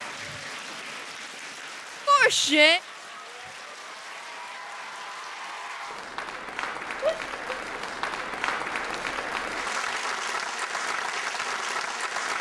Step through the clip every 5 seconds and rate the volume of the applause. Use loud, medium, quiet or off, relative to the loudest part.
medium, loud, loud.